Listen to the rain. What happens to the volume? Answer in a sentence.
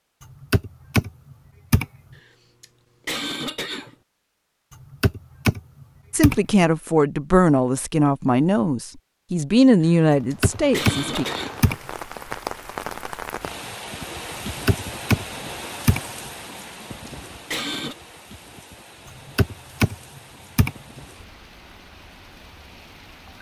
The loudness of the rain goes down.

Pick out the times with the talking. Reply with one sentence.
You can hear the talking from 6.1 to 11.2 s.